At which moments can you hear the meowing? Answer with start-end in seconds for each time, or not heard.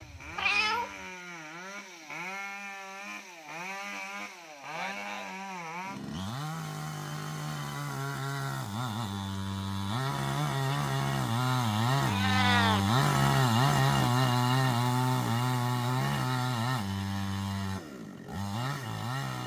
0.0-0.9, 12.0-12.8.